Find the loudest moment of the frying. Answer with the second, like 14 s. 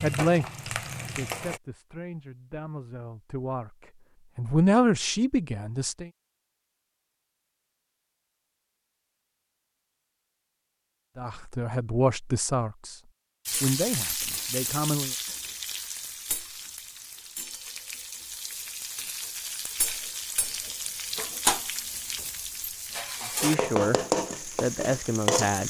24 s.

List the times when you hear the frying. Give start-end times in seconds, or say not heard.
0.0-1.6, 13.4-25.6.